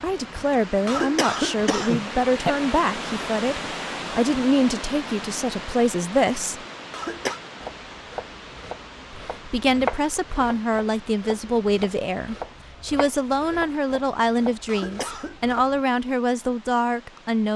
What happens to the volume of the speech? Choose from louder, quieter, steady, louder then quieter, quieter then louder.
steady.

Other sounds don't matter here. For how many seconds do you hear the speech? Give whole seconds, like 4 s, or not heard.
15 s.